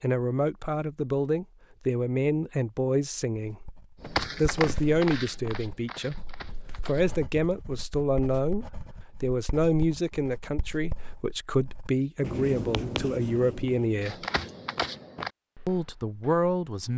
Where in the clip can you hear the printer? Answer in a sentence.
You can't hear the printer here.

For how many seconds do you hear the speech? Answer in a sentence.
The speech can be heard for 14 seconds in total.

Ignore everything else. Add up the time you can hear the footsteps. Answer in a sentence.
The footsteps can be heard for 6 seconds in total.